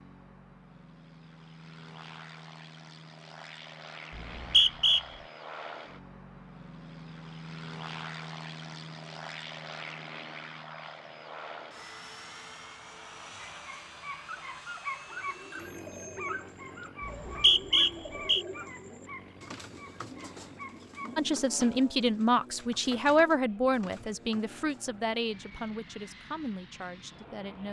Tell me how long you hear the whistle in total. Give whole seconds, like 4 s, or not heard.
2 s.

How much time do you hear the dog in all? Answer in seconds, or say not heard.
8 s.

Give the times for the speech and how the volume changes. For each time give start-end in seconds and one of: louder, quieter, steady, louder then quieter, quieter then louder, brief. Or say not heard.
21.1-27.6 quieter.